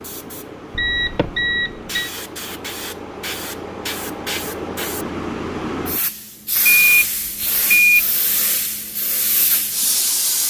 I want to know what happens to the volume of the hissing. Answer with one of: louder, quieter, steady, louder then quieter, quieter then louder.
louder.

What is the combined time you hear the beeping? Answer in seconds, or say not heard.
3 s.